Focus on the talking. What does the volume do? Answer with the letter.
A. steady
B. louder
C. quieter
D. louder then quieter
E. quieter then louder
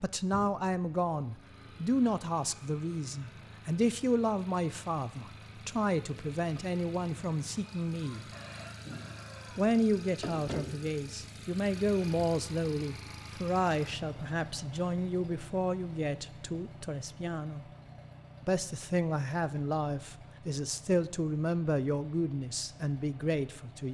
A.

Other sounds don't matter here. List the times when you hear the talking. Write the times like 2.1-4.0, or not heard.
0.0-8.2, 9.6-17.6, 18.4-23.8.